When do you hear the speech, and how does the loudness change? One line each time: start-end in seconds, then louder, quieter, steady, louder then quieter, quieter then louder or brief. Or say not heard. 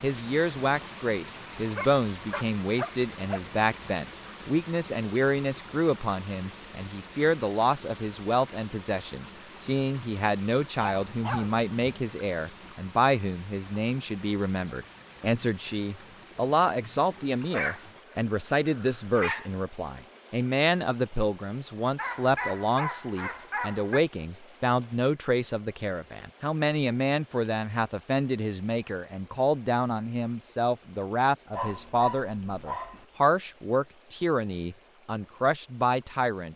0.0-36.5 steady.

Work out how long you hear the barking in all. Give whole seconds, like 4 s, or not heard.
9 s.